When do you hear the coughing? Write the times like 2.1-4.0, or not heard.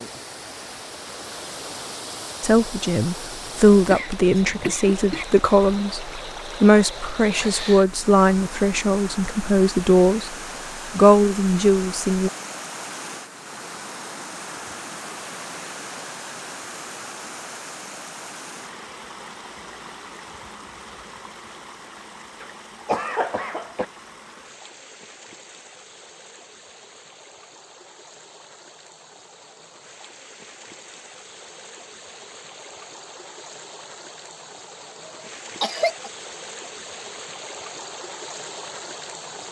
3.9-5.2, 22.4-23.9, 35.0-36.1.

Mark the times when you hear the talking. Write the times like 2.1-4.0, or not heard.
2.4-10.3, 10.9-12.3.